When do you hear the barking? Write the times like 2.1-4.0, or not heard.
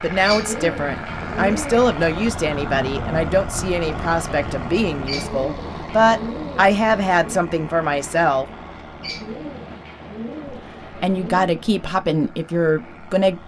not heard.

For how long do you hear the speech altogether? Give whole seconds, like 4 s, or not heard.
11 s.